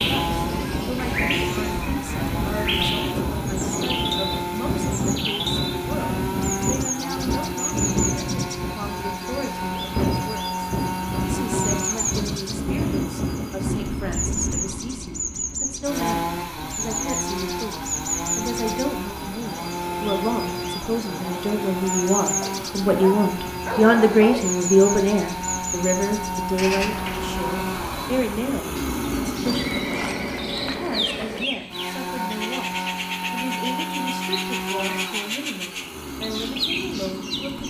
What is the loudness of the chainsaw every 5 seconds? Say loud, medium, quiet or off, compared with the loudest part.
loud, loud, loud, loud, loud, loud, loud, medium.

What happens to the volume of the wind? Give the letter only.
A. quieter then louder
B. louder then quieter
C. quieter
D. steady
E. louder
C.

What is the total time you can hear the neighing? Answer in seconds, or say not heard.
2 s.